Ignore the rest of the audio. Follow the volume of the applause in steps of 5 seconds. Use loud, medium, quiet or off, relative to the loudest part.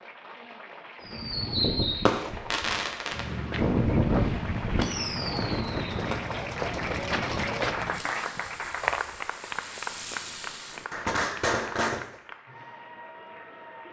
medium, loud, medium.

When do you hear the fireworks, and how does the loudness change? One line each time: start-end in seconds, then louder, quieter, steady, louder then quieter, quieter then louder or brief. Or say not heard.
1.1-12.1 quieter then louder.